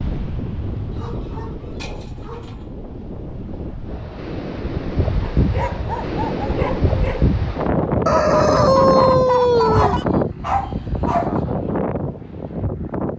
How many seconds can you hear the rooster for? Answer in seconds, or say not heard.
2 s.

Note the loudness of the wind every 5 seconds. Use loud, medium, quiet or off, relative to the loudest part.
medium, loud, loud.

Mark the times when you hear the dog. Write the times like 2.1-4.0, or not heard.
0.9-2.6, 5.2-7.2, 9.7-11.3.